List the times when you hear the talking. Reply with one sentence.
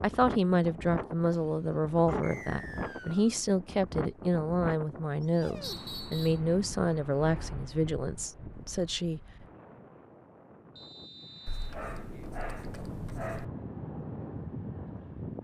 You can hear the talking from 0.0 to 9.2 s.